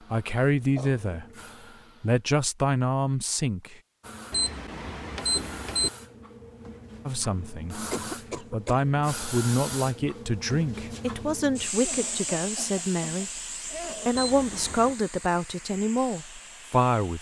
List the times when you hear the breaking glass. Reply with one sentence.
You can't hear the breaking glass here.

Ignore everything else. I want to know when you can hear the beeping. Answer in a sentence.
The beeping can be heard from 4.3 to 5.9 s and from 14.2 to 14.9 s.